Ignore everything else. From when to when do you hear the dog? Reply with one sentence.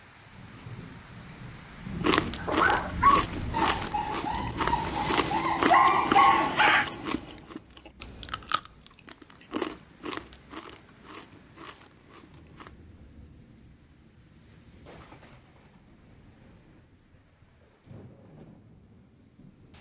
You can hear the dog from 2.4 to 6.8 s.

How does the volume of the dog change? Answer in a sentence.
The loudness of the dog goes down, then up.